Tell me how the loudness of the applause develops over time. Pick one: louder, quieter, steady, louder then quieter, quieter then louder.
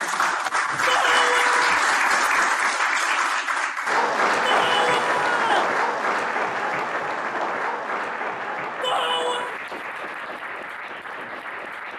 quieter.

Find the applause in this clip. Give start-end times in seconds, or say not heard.
0.0-11.9.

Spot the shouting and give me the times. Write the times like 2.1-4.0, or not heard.
0.8-1.6, 4.4-5.8, 8.8-9.6.